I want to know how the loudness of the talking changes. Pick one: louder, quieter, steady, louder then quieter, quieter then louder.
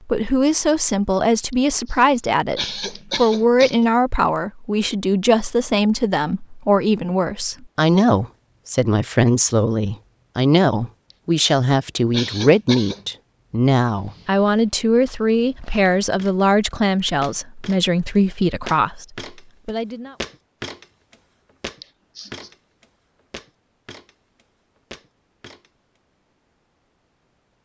steady.